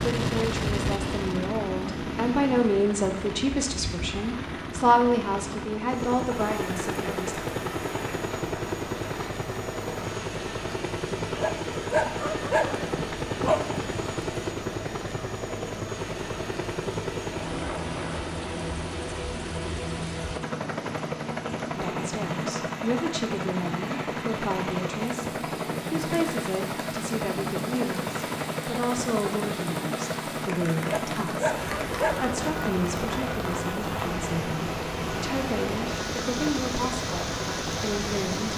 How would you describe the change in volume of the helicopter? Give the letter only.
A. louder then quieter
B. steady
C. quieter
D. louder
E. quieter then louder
B.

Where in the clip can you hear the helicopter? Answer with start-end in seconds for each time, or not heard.
0.0-38.5.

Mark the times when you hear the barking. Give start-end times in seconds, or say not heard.
11.3-14.1, 30.8-32.6.